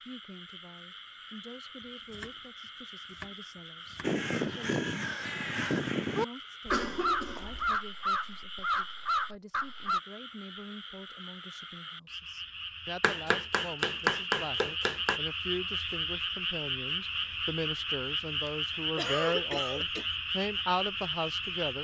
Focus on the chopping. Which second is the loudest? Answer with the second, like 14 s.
14 s.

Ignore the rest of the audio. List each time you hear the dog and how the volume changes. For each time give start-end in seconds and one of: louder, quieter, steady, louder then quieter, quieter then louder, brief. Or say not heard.
not heard.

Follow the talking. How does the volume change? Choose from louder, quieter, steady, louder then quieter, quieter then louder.
louder.